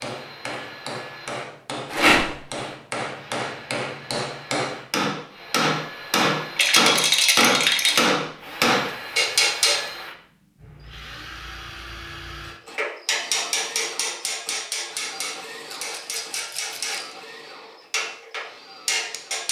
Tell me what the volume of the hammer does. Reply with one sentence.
The loudness of the hammer goes up, then down.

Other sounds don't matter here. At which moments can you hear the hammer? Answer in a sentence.
You can hear the hammer from 0.0 to 9.8 s and from 12.8 to 19.4 s.